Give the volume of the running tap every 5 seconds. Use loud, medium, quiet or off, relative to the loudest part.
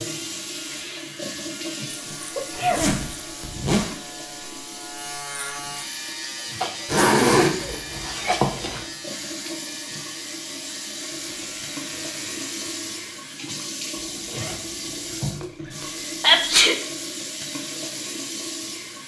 loud, medium, loud, loud.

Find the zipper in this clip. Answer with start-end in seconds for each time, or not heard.
2.5-4.0, 6.8-8.8, 13.9-15.4.